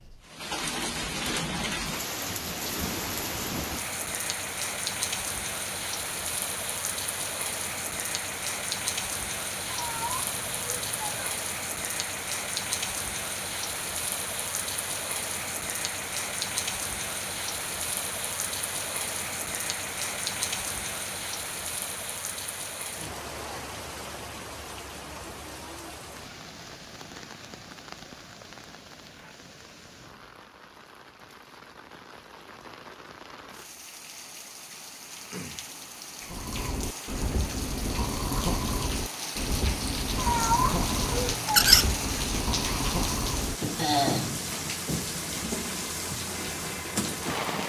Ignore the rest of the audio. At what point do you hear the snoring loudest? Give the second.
44 s.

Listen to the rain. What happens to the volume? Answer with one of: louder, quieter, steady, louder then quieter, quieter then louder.
quieter then louder.